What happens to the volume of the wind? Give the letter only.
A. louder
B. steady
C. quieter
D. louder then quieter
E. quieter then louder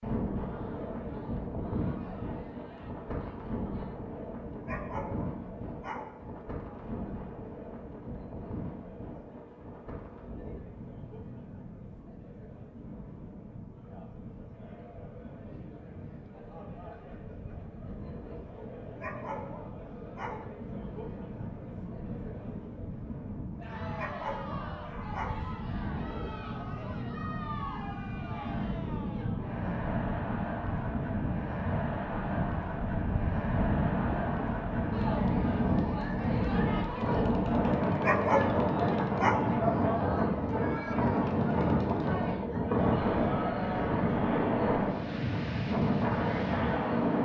E.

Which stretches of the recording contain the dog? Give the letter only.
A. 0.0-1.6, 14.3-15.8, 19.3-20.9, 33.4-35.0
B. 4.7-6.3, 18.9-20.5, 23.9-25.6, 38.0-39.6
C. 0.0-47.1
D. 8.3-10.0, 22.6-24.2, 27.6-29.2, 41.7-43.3
B.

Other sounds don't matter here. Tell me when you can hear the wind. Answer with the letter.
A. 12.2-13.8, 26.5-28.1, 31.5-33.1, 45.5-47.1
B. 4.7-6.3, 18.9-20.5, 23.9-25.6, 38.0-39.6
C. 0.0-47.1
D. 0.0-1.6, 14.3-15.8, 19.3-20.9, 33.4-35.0
C.